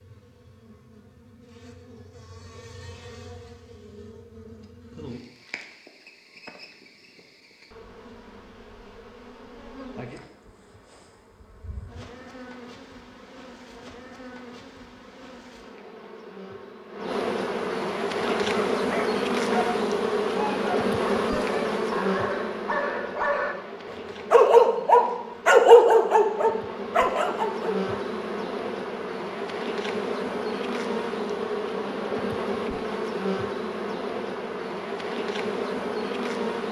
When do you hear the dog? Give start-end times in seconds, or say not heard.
18.2-27.9.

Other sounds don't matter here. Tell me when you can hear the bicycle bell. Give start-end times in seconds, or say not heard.
not heard.